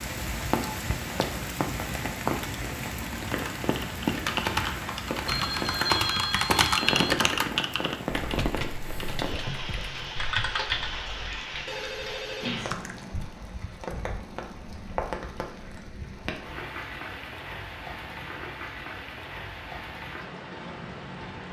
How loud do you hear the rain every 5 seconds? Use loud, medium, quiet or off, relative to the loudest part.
loud, loud, medium, medium, medium.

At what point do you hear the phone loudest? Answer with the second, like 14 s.
6 s.